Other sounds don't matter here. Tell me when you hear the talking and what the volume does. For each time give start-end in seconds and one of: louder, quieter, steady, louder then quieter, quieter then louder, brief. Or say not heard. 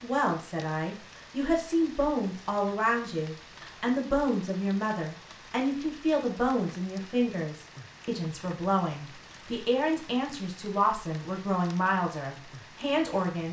0.0-13.4 steady.